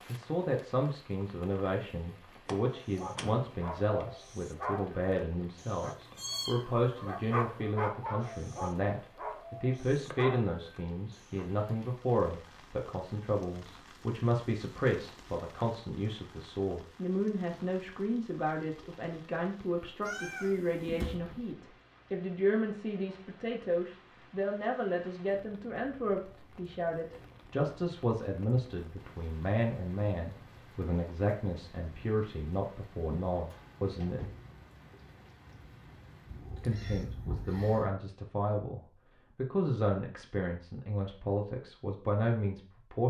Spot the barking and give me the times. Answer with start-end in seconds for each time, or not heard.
2.7-11.4.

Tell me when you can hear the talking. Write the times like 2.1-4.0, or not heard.
0.1-34.2, 36.6-43.0.